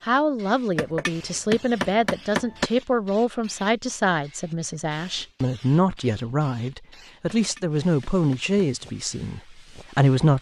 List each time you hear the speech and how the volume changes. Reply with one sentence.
You can hear the speech from 0.0 to 10.3 s, at a steady volume.